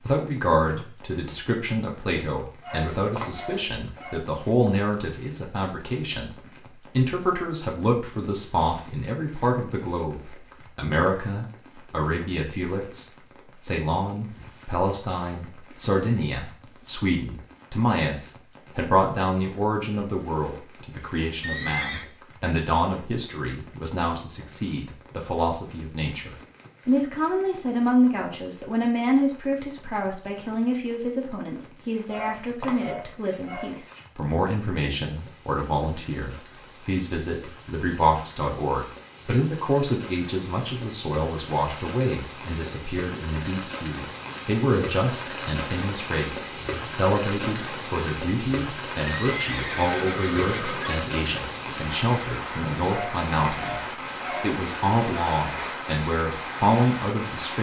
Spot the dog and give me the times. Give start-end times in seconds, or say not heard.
2.6-4.2, 32.0-34.0, 52.9-54.5.